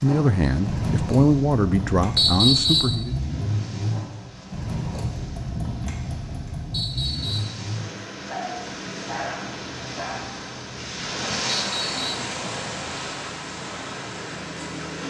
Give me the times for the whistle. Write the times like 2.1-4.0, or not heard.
2.1-3.0, 6.7-7.5, 11.7-12.2.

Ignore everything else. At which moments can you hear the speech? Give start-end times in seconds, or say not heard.
0.0-3.1.